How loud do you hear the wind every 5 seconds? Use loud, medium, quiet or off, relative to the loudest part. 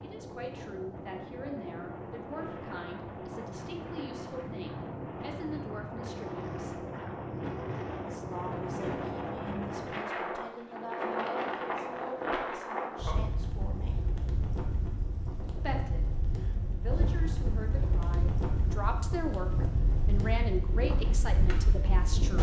medium, loud, loud, loud, loud.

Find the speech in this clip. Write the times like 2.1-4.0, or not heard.
0.0-6.8, 8.1-14.1, 15.6-22.3.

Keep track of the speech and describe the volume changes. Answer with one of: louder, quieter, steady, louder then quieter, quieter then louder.
louder.